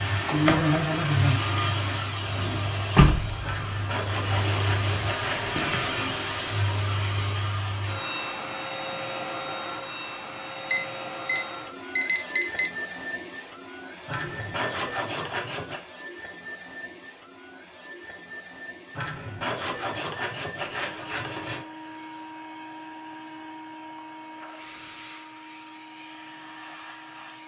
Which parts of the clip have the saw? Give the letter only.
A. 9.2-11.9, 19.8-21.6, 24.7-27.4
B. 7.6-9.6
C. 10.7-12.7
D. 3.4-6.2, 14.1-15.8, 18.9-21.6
D.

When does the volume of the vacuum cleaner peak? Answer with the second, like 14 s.
1 s.